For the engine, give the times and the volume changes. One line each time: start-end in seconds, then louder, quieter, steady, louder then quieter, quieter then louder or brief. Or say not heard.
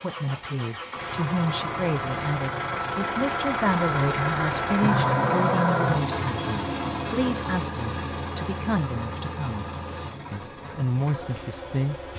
0.0-12.1 louder then quieter.